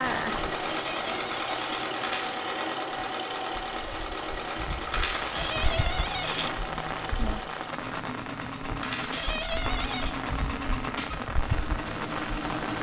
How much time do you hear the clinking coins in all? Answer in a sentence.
You can hear the clinking coins for 2 seconds altogether.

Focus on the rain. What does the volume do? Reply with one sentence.
The loudness of the rain goes up.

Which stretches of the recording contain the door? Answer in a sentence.
You can hear the door from 0.7 to 1.9 s, from 5.3 to 6.5 s and from 9.1 to 10.2 s.